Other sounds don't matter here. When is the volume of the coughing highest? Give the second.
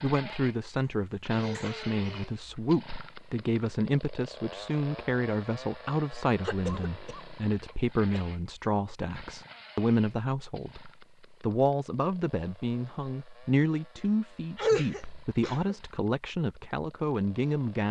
15 s.